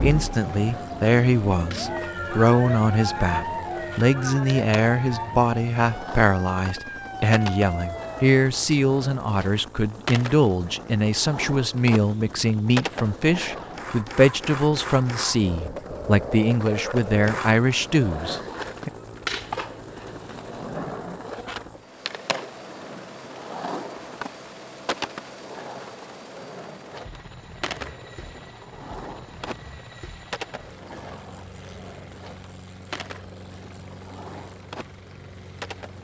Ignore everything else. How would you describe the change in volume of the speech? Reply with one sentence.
The loudness of the speech stays about the same.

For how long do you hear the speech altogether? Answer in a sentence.
The speech can be heard for 19 seconds in total.